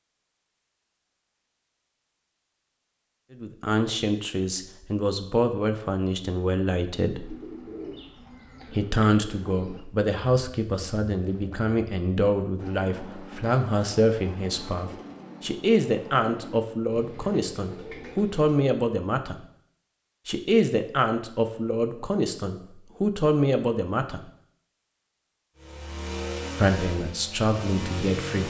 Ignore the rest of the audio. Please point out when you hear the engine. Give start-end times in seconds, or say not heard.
25.6-28.4.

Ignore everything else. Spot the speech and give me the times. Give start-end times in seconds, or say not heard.
3.3-7.3, 8.7-19.4, 20.2-24.2, 26.6-28.4.